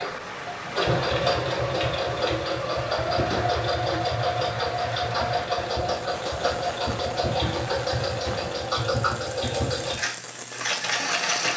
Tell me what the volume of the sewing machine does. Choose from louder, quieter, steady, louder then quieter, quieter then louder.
steady.